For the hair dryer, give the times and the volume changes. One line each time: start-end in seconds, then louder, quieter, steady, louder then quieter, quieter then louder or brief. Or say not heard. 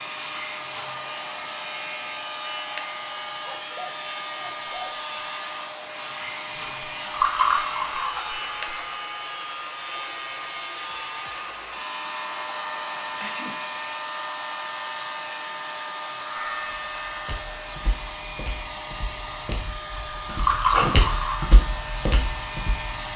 0.0-23.1 steady.